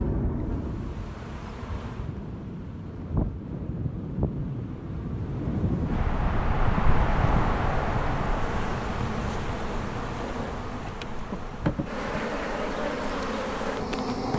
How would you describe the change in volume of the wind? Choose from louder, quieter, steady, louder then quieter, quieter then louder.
louder then quieter.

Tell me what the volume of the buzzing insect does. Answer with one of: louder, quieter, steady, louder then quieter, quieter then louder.
louder.